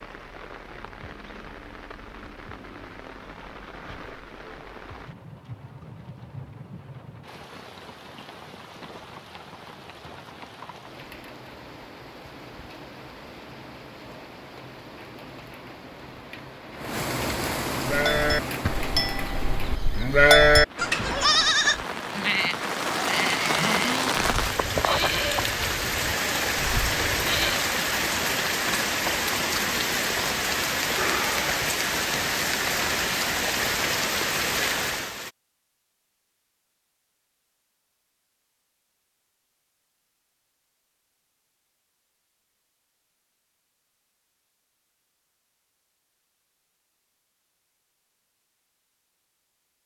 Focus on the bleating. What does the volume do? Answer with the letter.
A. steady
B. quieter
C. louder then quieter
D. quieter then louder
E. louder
C.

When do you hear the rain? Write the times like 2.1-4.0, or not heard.
0.0-35.3.